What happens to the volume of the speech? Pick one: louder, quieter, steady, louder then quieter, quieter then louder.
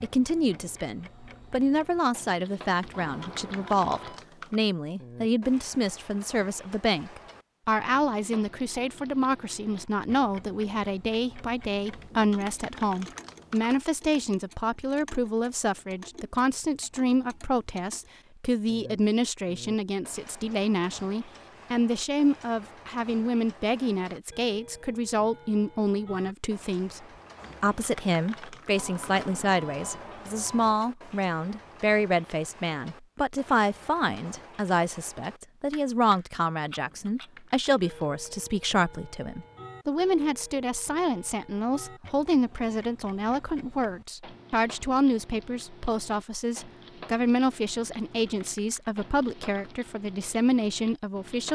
steady.